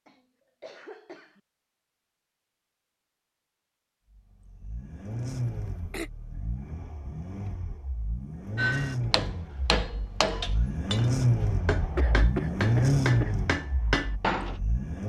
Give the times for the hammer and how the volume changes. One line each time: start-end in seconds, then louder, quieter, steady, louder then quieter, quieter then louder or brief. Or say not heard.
8.6-14.6 quieter then louder.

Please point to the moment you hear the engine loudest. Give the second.
13 s.